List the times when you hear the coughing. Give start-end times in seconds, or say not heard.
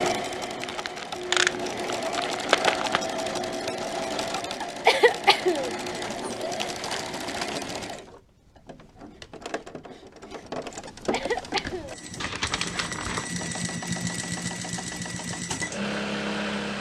4.6-6.3, 10.8-11.9.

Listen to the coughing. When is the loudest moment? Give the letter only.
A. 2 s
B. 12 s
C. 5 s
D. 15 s
C.